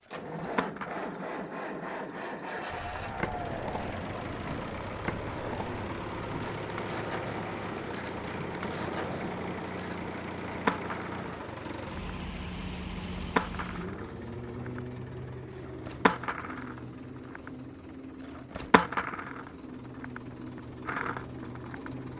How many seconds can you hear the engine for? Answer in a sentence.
The engine can be heard for 22 seconds in total.